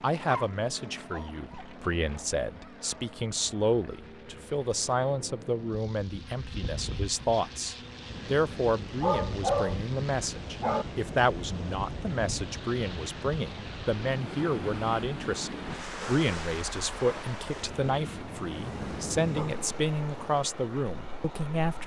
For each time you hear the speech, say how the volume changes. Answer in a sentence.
You can hear the speech from 0.0 to 21.8 s, at a steady volume.